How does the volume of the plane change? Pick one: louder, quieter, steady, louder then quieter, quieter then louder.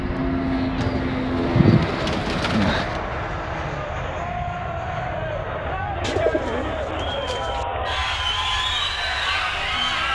quieter.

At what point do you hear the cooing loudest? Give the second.
2 s.